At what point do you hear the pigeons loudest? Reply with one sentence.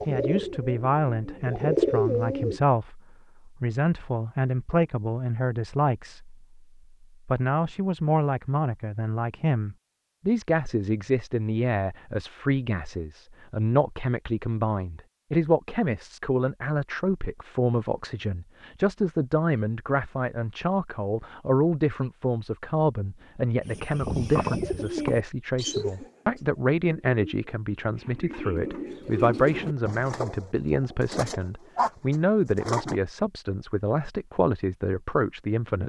The loudest moment of the pigeons is at 2 seconds.